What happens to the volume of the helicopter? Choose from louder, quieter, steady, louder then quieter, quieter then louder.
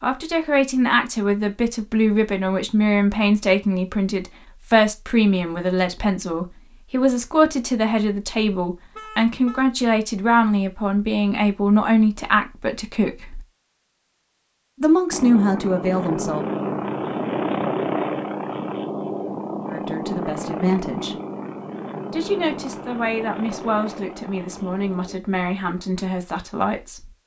quieter.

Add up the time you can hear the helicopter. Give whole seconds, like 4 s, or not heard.
10 s.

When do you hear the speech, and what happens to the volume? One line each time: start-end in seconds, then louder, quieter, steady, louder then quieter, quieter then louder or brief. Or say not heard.
0.0-13.4 steady
14.8-16.4 brief
19.6-21.1 brief
22.1-27.1 steady.